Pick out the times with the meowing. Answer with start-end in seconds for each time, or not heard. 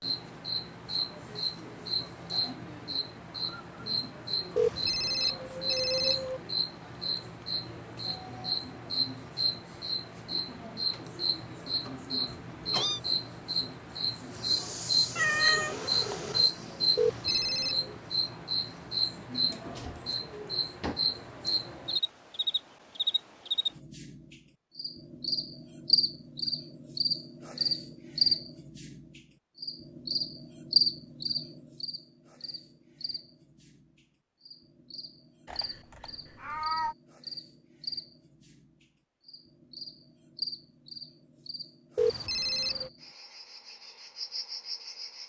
12.2-13.0, 15.2-16.5, 35.5-37.0.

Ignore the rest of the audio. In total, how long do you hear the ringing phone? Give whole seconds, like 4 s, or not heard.
4 s.